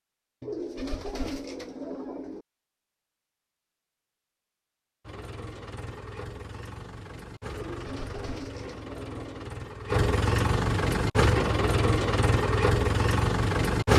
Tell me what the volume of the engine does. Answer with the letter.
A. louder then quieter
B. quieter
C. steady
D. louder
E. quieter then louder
D.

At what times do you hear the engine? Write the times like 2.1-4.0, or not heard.
5.0-13.9.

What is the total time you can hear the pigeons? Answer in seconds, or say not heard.
4 s.